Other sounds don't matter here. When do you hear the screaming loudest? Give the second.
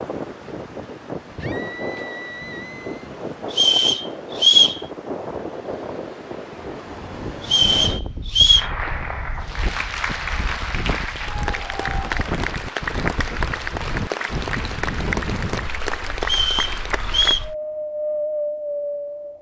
2 s.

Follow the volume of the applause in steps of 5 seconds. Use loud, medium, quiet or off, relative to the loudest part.
off, loud, loud, loud.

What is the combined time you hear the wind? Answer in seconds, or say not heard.
19 s.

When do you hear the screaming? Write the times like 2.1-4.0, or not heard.
1.4-3.1.